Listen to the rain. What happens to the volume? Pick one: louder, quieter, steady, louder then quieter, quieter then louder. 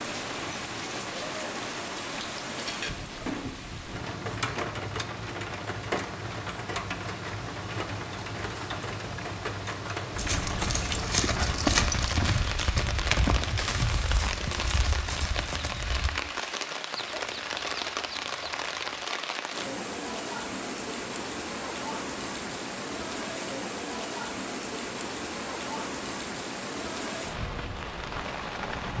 steady.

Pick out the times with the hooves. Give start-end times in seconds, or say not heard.
10.1-16.1.